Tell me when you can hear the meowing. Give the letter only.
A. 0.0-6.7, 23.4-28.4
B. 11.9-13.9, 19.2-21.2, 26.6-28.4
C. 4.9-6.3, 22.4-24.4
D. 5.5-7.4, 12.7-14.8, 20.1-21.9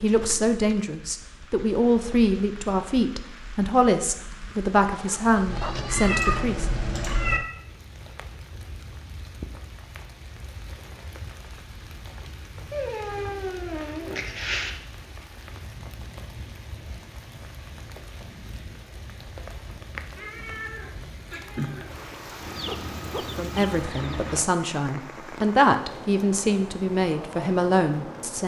D.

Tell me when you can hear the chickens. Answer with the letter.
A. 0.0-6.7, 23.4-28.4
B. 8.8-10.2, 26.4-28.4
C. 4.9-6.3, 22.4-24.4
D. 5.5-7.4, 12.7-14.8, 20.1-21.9
C.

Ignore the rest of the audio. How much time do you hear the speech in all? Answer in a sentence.
You can hear the speech for 12 seconds altogether.